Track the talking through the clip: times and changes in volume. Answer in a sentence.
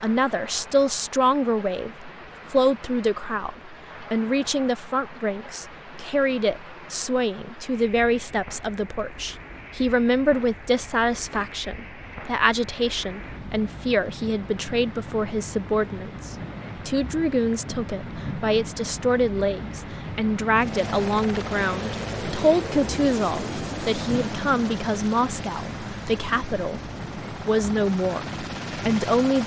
The talking can be heard from 0.0 to 29.4 s, at a steady volume.